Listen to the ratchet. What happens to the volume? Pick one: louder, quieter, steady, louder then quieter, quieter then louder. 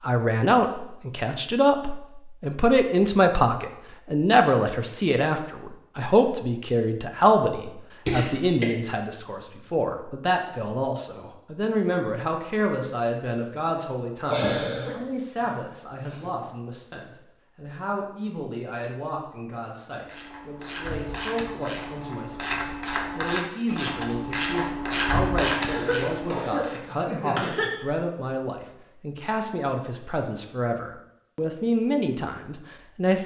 louder.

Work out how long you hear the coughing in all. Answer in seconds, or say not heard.
5 s.